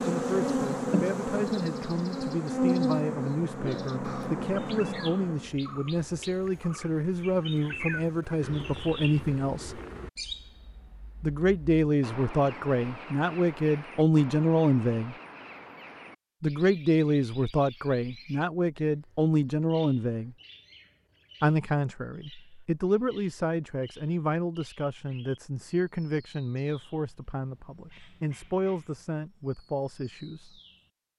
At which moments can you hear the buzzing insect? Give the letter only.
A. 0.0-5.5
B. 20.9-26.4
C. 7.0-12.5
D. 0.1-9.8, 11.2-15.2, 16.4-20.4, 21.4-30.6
A.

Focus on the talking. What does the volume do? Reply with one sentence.
The loudness of the talking goes up, then down.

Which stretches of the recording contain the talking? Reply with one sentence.
You can hear the talking from 0.1 to 9.8 s, from 11.2 to 15.2 s, from 16.4 to 20.4 s and from 21.4 to 30.6 s.